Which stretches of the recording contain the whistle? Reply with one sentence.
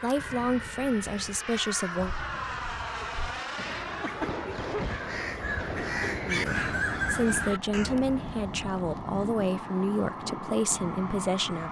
You can't hear the whistle here.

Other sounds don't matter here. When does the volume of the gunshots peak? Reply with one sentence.
The loudest moment of the gunshots is at 5 seconds.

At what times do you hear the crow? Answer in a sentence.
The crow can be heard from 1.9 to 8.8 s.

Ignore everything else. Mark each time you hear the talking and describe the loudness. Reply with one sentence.
The talking can be heard briefly from 0.0 to 2.1 s; and from 6.2 to 11.6 s, at a steady volume.